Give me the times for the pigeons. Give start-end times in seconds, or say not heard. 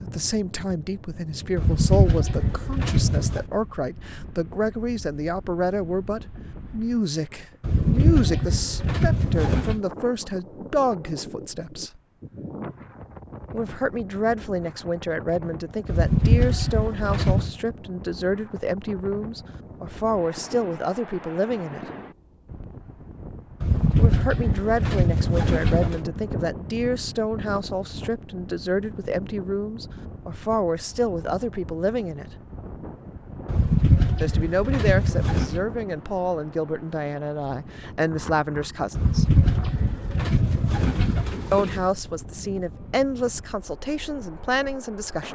1.6-3.5, 7.6-9.8, 15.8-17.5, 23.6-26.0, 33.5-35.6, 39.0-41.9.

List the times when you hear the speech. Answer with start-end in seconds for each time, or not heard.
0.0-12.0, 13.5-21.9, 23.9-32.3, 34.2-39.4, 41.5-45.2.